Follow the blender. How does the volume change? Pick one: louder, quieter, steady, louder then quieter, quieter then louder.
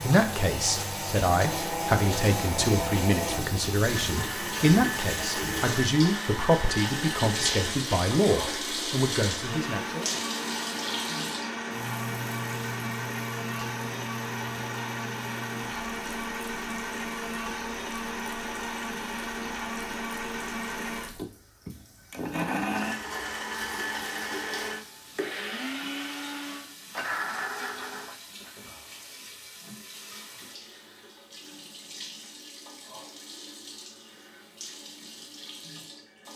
steady.